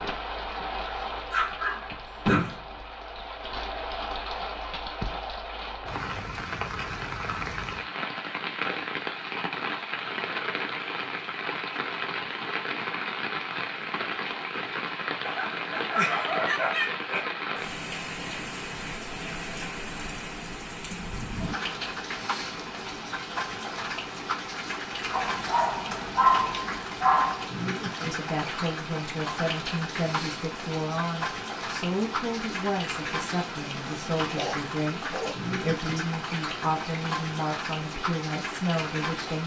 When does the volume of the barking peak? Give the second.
26 s.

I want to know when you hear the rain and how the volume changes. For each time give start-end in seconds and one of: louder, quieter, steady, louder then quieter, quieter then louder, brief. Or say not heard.
0.0-39.4 steady.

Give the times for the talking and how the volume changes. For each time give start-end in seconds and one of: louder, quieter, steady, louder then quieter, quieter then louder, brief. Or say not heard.
28.0-39.4 steady.